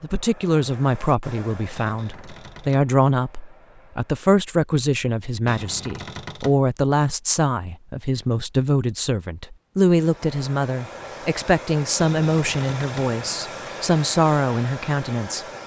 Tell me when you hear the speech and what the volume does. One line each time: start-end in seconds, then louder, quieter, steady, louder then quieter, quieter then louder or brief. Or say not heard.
0.0-15.4 steady.